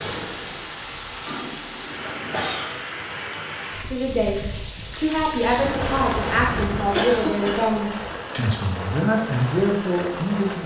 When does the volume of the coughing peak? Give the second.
7 s.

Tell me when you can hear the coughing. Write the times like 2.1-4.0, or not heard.
1.2-2.8, 6.9-7.8.